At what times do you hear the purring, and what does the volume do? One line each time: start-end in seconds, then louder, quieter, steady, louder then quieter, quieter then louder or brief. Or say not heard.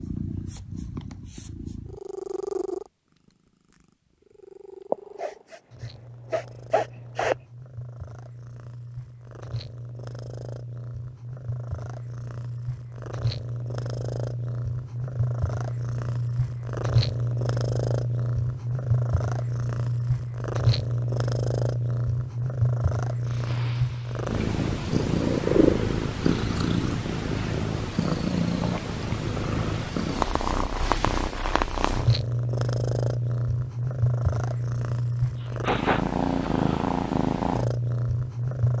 0.0-38.7 louder.